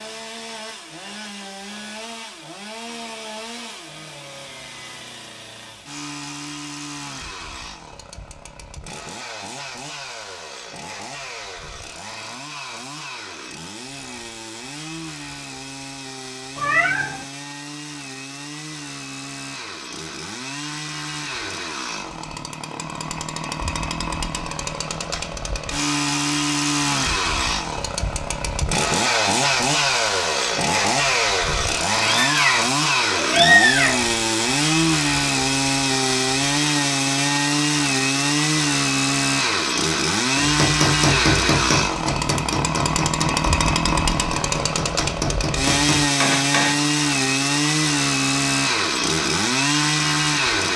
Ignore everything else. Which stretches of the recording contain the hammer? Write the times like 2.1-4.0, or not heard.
40.4-46.8.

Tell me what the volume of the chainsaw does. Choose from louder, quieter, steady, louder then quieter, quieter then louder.
louder.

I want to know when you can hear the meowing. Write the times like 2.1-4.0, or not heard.
16.6-17.2, 32.0-34.0.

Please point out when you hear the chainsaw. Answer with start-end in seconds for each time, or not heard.
0.0-50.7.